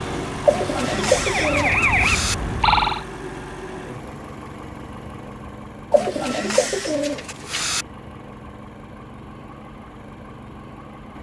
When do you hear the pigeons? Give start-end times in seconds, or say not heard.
0.5-2.4, 5.9-7.8.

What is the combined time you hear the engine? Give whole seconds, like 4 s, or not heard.
11 s.